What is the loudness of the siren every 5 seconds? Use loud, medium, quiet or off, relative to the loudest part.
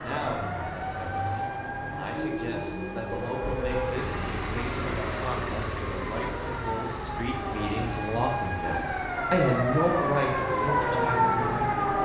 medium, medium, loud.